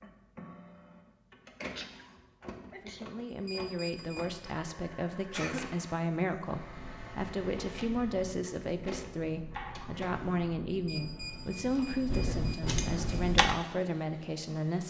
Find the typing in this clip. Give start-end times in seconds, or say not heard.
6.5-13.6.